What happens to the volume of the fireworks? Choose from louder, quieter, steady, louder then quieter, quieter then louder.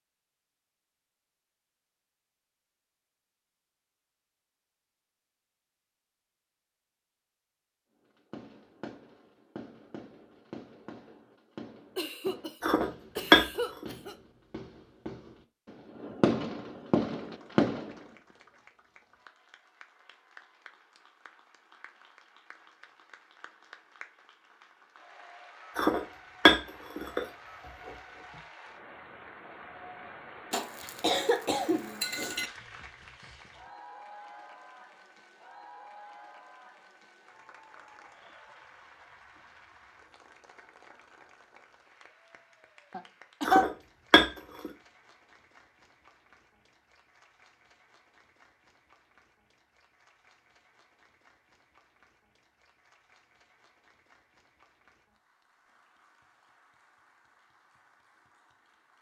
louder.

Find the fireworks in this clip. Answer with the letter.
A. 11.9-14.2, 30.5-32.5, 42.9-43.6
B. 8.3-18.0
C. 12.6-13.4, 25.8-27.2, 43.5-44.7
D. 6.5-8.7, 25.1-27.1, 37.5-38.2
B.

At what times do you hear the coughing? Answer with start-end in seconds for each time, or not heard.
11.9-14.2, 30.5-32.5, 42.9-43.6.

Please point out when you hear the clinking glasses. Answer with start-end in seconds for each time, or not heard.
12.6-13.4, 25.8-27.2, 43.5-44.7.